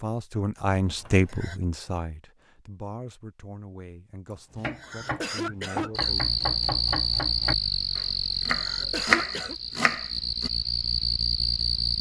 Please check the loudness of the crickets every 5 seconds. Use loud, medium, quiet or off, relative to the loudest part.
off, loud, loud.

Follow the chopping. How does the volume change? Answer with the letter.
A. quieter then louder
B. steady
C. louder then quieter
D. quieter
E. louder
E.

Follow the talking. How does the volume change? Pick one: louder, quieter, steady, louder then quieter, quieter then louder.
quieter.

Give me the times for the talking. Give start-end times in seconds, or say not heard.
0.0-6.2.